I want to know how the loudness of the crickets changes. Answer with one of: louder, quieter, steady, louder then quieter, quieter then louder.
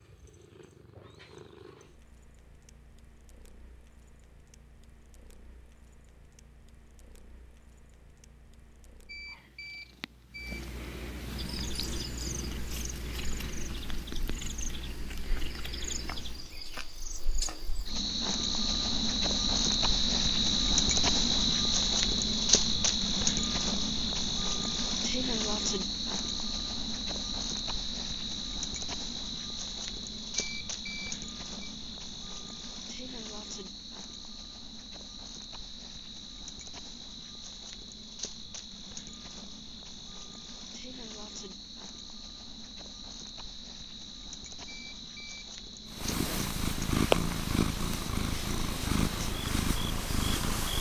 louder then quieter.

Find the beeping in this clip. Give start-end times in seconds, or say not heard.
9.1-10.6, 30.4-31.7, 44.6-45.5.